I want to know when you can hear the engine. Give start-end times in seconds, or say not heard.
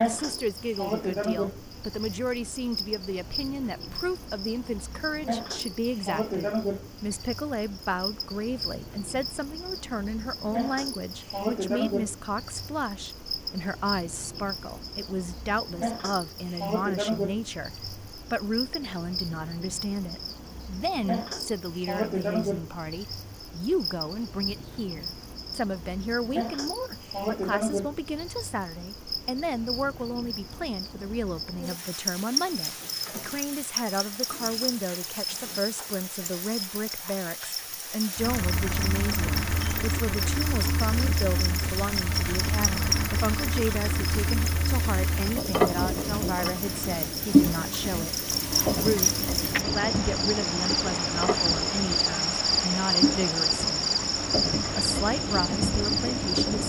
38.1-56.6.